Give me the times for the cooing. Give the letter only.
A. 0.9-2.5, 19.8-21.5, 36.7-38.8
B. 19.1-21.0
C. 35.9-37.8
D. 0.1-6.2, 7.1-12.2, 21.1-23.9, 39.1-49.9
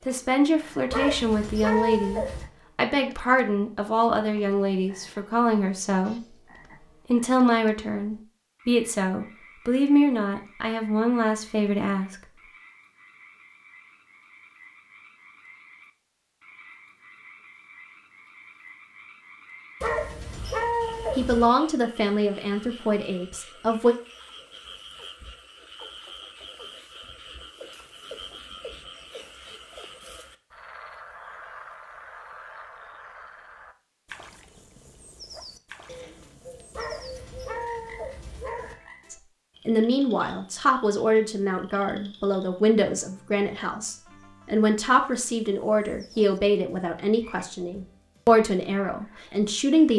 C.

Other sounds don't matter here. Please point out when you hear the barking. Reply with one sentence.
You can hear the barking from 0.9 to 2.5 s, from 19.8 to 21.5 s and from 36.7 to 38.8 s.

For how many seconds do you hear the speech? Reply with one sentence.
You can hear the speech for 25 seconds altogether.